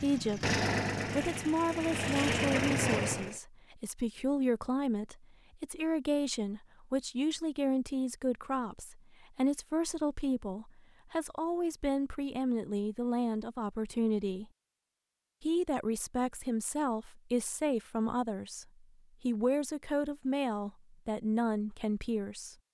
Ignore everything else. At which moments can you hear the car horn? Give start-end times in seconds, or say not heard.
not heard.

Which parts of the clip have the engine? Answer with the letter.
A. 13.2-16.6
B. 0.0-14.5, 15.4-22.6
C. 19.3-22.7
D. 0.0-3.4
D.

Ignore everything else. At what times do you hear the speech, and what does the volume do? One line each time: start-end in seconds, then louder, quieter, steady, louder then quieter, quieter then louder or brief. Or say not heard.
0.0-14.5 steady
15.4-22.6 steady.